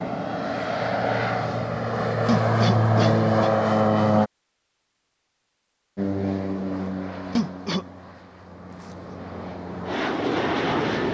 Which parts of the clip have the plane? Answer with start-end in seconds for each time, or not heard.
0.0-4.3, 6.0-11.0.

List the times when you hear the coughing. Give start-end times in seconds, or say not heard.
2.2-3.5, 7.3-7.8.